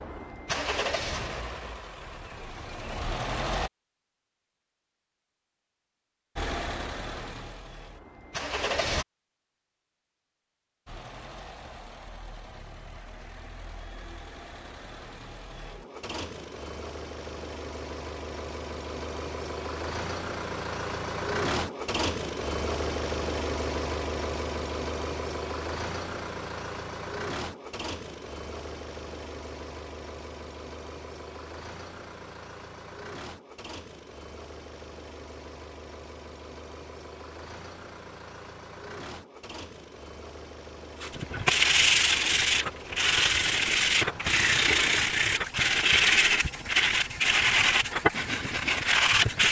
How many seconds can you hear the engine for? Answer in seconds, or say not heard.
45 s.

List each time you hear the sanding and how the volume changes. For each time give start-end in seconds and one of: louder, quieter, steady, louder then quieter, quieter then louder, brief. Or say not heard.
41.1-49.4 steady.